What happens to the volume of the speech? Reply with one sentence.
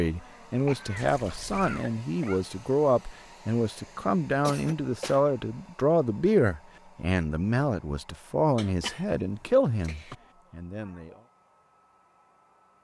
The volume of the speech stays about the same.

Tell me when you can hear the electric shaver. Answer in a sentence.
The electric shaver can't be heard in this clip.